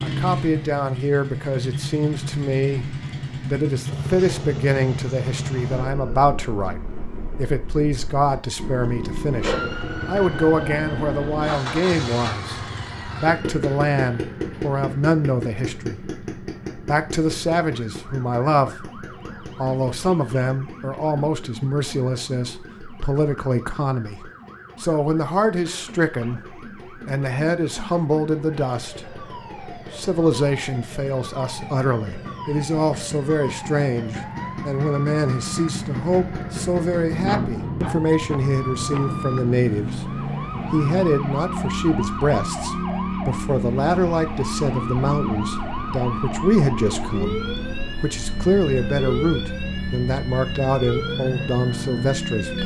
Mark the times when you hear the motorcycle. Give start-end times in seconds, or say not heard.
0.0-52.6.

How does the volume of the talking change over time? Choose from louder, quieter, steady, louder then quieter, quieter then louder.
steady.